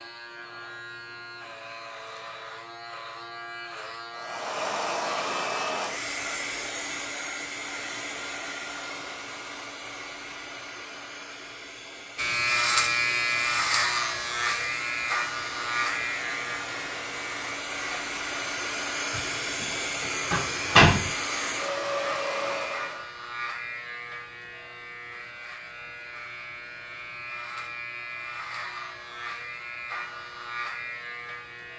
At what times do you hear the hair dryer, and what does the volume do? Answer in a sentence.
The hair dryer can be heard from 4.1 to 23.1 s, getting quieter then louder.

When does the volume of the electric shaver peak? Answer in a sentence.
The volume of the electric shaver peaks at 13 seconds.